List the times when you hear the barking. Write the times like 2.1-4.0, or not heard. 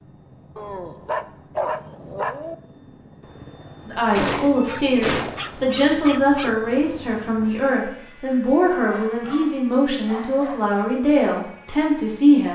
0.6-2.5, 4.5-6.5, 8.8-10.9.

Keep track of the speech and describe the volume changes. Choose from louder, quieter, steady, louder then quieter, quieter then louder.
steady.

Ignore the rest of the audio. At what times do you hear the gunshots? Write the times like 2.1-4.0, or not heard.
4.1-5.7.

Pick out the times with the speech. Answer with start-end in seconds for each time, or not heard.
3.9-12.5.